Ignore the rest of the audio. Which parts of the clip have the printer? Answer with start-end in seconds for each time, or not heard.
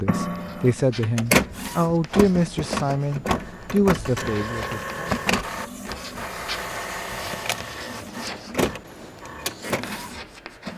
0.0-10.7.